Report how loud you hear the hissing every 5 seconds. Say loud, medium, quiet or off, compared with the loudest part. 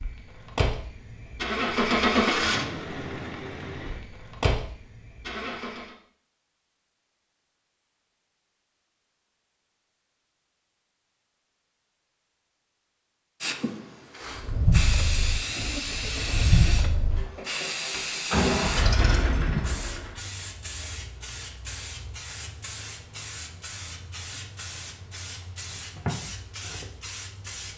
off, off, loud, loud, medium, medium.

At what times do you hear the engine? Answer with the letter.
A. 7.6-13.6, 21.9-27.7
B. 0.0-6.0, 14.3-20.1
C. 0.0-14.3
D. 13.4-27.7
B.